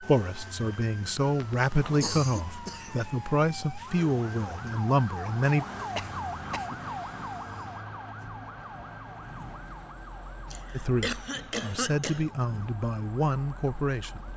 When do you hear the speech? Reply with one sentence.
You can hear the speech from 0.0 to 5.7 s and from 10.7 to 14.2 s.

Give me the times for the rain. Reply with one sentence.
The rain can't be heard in this clip.